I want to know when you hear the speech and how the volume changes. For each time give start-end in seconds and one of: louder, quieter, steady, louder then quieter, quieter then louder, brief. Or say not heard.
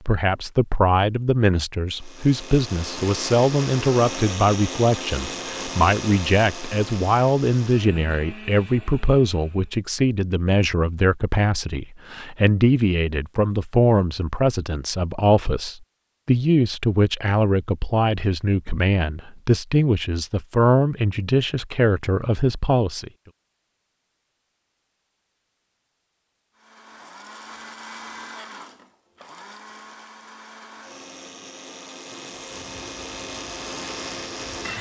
0.1-23.1 steady.